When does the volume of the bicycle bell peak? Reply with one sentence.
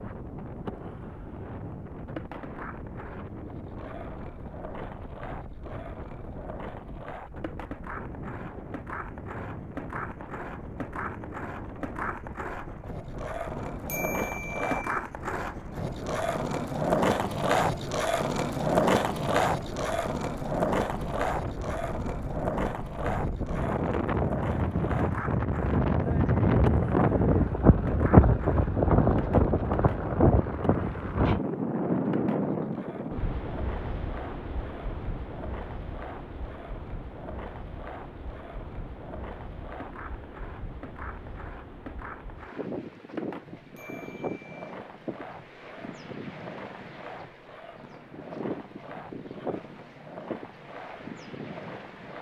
The loudest moment of the bicycle bell is at 14 seconds.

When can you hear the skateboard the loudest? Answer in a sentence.
The loudest moment of the skateboard is at 19 seconds.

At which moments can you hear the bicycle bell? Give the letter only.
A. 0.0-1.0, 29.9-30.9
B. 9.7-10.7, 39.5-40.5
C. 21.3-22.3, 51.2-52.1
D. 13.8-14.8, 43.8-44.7
D.